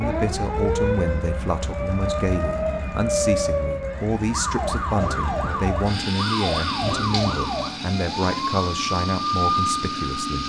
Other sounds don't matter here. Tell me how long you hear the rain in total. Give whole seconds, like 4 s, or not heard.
not heard.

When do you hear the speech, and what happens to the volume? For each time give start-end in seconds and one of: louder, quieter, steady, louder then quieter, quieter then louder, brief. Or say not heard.
0.0-10.4 steady.